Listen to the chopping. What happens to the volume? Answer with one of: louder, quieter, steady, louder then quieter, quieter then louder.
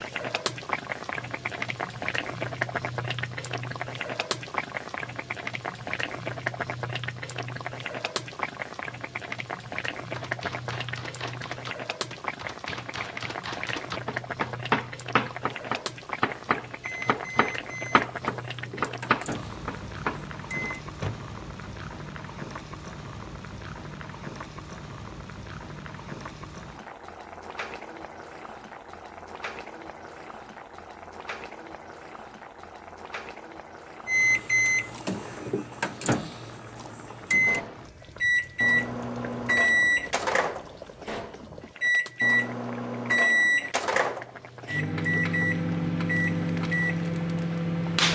louder.